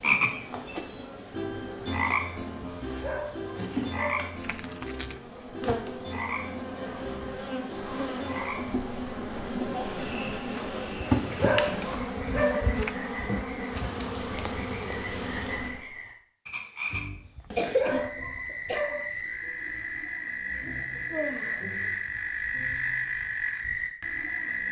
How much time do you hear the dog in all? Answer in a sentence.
You can hear the dog for 7 seconds altogether.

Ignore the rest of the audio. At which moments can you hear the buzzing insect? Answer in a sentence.
You can hear the buzzing insect from 0.0 to 15.8 s.